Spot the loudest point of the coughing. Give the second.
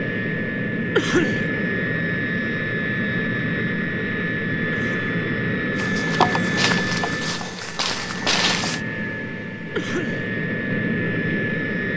1 s.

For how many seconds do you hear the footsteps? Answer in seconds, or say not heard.
3 s.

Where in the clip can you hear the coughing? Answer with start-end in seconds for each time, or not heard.
0.9-1.4, 4.7-5.2, 9.8-10.2.